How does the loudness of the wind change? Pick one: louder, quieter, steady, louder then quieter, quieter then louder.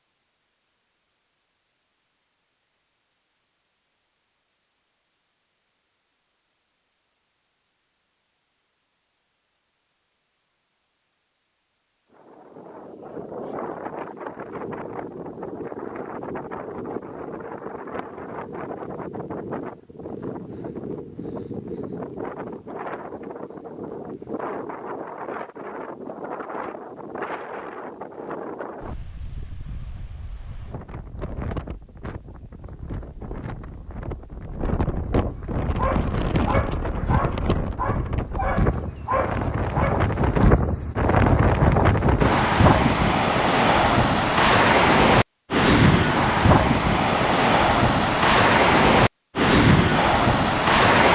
louder.